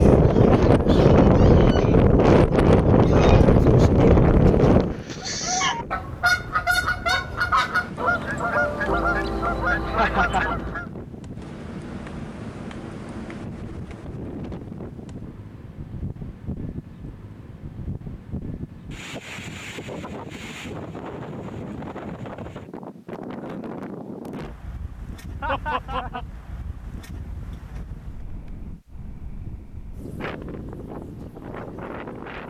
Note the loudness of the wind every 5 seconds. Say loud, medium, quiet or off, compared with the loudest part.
loud, quiet, quiet, quiet, quiet, quiet, quiet.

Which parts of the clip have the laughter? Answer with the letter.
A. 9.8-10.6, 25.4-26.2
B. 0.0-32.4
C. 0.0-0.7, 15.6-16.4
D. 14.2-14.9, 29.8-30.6
A.